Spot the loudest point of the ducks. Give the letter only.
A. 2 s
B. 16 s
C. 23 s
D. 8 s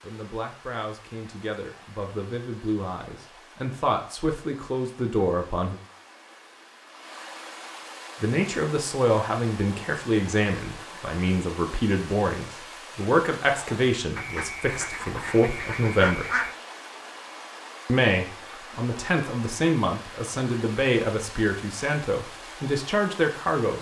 B.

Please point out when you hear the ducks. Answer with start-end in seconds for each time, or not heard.
14.2-16.6.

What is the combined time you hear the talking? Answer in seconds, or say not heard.
20 s.